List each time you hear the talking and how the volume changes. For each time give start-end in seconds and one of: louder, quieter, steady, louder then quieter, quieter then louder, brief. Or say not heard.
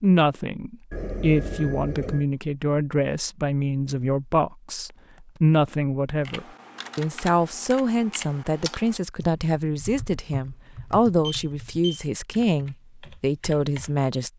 0.0-14.3 steady.